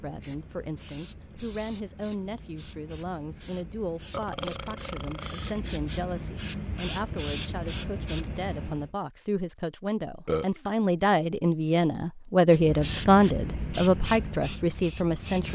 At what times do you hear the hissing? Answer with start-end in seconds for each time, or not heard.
0.0-8.9, 12.4-15.4.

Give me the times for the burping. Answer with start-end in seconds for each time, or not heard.
4.1-5.6, 10.2-10.8.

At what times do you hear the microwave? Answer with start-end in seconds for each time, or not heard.
not heard.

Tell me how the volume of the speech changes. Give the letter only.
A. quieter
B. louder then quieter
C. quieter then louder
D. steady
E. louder
E.